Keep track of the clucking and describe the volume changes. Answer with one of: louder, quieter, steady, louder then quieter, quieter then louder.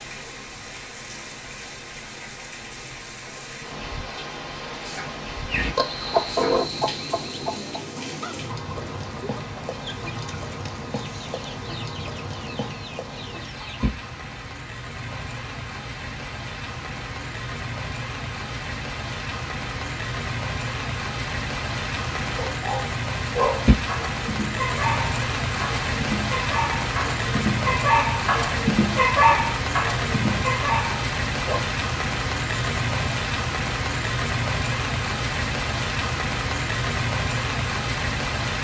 quieter.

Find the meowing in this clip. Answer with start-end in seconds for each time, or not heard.
not heard.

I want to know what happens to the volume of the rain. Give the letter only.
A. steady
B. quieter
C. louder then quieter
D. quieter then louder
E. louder
E.